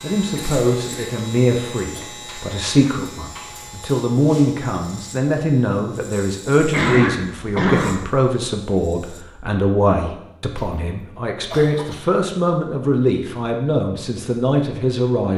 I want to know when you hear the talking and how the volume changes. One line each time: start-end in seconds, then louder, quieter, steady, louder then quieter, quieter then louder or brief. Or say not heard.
0.0-15.3 steady.